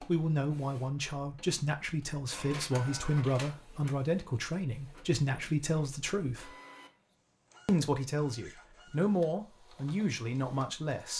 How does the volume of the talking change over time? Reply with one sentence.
The volume of the talking stays about the same.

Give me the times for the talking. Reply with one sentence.
The talking can be heard from 0.0 to 6.5 s and from 7.7 to 11.1 s.